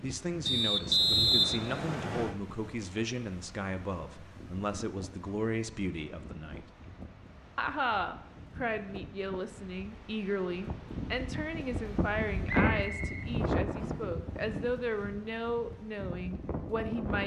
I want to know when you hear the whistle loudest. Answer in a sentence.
The loudest moment of the whistle is at 1 second.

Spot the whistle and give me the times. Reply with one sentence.
You can hear the whistle from 0.5 to 2.4 s and from 12.4 to 14.1 s.